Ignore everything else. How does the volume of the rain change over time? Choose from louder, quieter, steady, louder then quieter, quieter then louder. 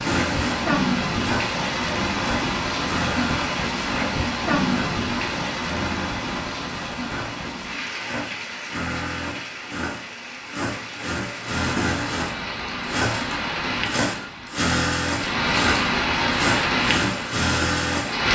quieter then louder.